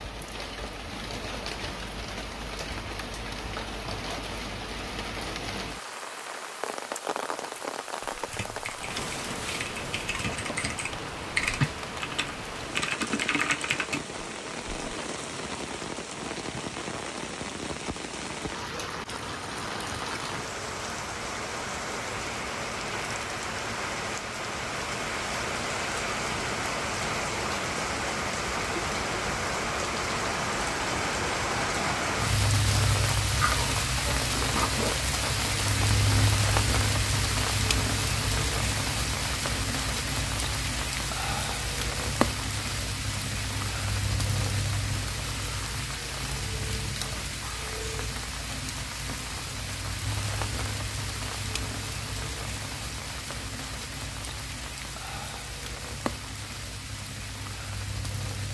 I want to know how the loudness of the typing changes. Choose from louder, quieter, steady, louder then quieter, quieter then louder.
louder.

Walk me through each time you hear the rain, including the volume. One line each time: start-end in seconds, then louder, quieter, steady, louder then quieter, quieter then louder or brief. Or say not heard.
0.0-58.5 louder then quieter.